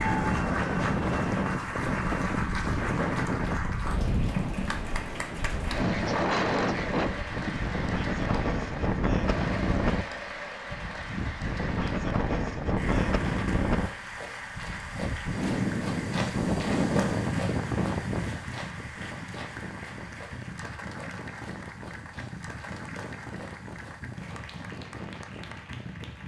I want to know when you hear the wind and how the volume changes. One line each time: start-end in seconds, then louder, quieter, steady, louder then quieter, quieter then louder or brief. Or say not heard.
0.0-26.2 quieter.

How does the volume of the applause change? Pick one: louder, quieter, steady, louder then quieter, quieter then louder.
quieter.